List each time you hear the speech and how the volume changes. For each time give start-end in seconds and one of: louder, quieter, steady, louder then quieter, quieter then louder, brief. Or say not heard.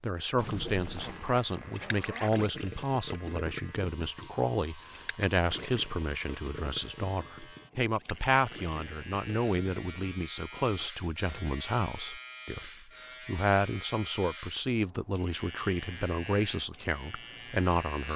0.0-18.1 steady.